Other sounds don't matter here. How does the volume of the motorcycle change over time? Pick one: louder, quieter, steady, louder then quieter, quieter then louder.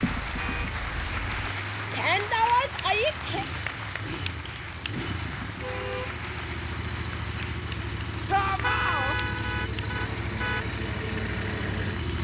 louder.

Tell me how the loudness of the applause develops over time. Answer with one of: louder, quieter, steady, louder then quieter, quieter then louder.
quieter.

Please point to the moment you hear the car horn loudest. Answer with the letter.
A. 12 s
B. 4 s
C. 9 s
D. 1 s
C.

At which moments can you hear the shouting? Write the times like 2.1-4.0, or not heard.
1.9-3.5, 8.2-9.2.